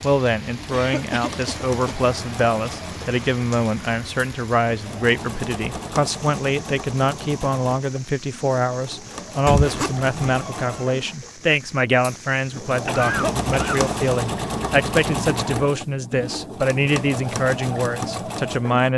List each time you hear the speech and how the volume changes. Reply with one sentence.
You can hear the speech from 0.0 to 18.9 s, at a steady volume.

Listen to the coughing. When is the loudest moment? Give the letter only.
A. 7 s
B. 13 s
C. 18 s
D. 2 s
B.